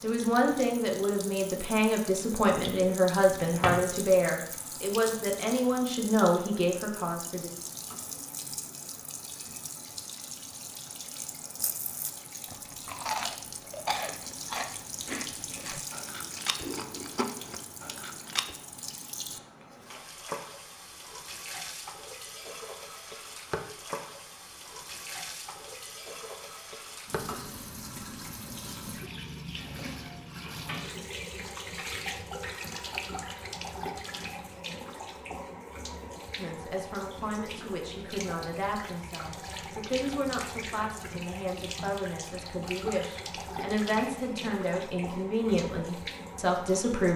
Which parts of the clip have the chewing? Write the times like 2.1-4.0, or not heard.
11.6-18.6.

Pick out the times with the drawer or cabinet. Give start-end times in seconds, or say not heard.
3.3-3.8.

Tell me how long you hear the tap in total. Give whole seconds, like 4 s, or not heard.
47 s.